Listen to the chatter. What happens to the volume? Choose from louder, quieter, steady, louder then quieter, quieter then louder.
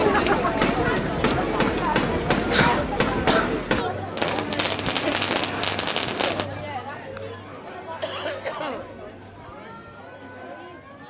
quieter.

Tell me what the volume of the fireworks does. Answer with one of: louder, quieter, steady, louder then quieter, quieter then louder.
steady.